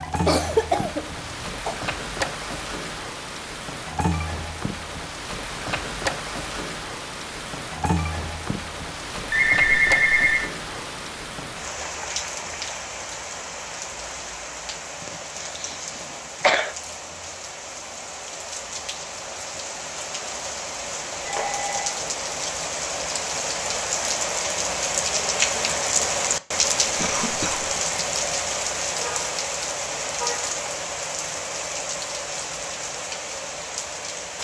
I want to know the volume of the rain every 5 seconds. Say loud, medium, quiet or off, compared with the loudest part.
medium, medium, medium, medium, loud, loud, medium.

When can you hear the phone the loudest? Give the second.
10 s.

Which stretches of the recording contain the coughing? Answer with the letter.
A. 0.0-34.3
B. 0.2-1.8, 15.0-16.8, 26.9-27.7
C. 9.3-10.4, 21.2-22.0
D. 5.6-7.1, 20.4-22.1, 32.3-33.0
B.